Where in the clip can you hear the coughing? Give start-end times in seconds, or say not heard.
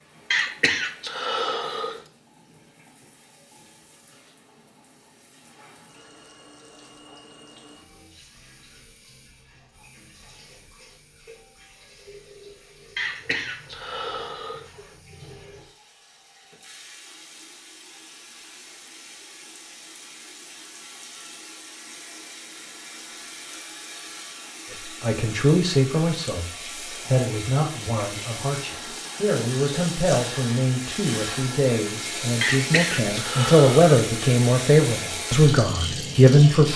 0.3-2.0, 12.9-14.7, 32.4-33.9.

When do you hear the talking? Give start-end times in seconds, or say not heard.
25.0-36.7.